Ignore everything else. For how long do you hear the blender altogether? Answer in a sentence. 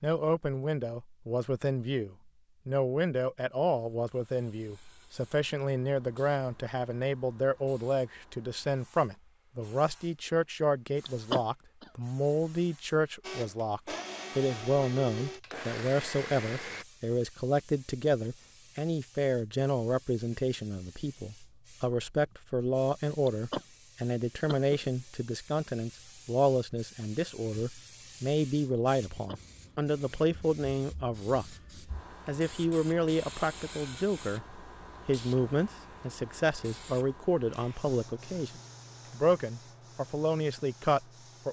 You can hear the blender for 4 seconds altogether.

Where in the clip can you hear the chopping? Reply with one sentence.
You can't hear the chopping here.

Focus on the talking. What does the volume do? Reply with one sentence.
The loudness of the talking stays about the same.